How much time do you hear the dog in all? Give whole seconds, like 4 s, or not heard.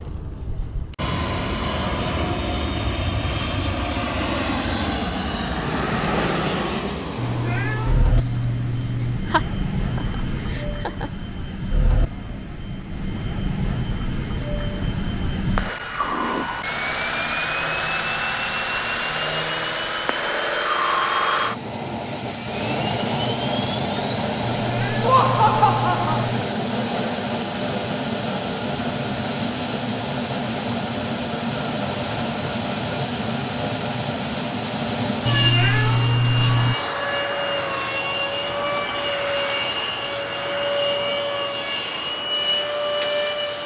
not heard.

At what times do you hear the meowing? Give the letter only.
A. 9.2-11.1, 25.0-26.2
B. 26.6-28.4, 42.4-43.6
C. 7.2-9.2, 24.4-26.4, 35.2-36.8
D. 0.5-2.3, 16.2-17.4
C.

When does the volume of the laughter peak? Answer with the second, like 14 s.
25 s.